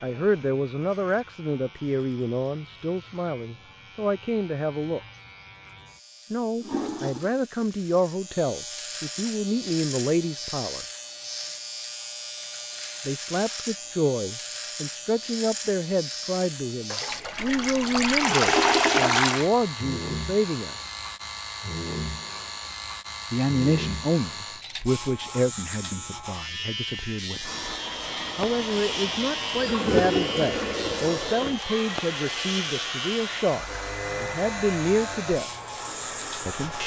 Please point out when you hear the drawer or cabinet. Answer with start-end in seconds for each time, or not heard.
not heard.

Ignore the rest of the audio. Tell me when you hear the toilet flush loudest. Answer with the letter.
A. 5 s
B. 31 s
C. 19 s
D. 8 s
C.